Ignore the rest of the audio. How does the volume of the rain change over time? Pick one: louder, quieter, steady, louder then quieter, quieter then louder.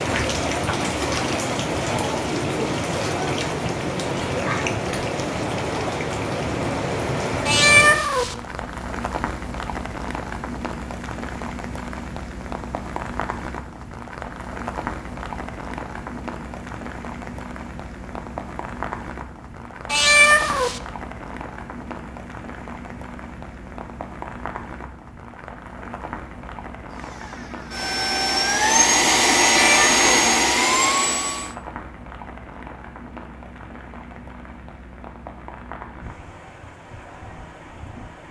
quieter.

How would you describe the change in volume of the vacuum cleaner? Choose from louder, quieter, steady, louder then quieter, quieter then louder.
louder.